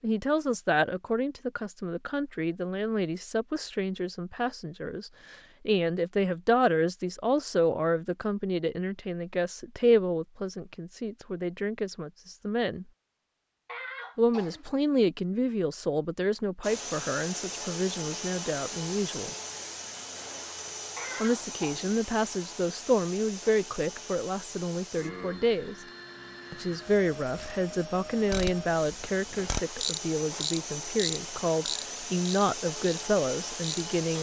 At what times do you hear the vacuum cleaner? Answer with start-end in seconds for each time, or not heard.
16.6-34.1.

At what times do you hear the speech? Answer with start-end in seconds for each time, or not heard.
0.0-12.8, 14.2-19.3, 21.2-25.8, 26.5-34.1.